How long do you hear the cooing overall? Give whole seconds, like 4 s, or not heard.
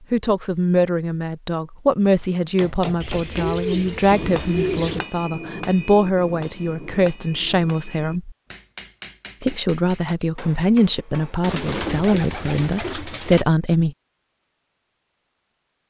4 s.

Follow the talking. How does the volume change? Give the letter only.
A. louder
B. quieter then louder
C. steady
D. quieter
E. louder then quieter
C.